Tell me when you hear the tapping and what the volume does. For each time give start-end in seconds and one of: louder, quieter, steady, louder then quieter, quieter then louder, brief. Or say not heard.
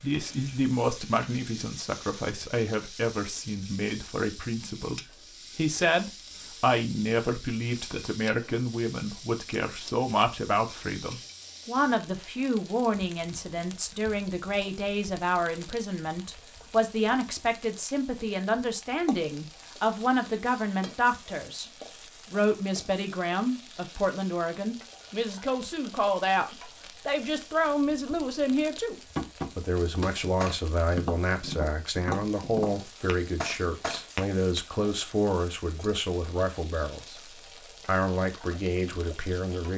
29.1-34.6 steady.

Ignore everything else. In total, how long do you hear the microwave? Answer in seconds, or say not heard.
not heard.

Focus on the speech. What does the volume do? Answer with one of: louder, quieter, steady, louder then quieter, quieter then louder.
steady.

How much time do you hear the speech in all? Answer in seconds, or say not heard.
39 s.